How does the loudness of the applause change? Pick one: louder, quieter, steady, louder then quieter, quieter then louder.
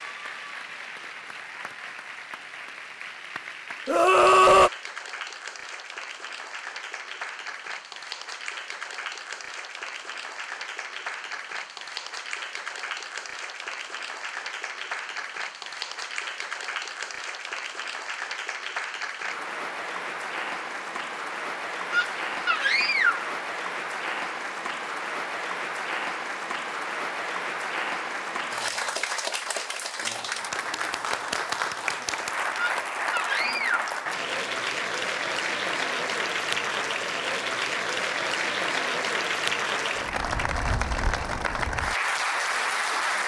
louder.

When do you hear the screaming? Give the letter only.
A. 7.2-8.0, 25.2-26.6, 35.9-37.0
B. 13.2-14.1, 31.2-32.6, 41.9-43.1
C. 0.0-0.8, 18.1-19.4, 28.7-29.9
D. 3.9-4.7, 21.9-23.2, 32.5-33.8
D.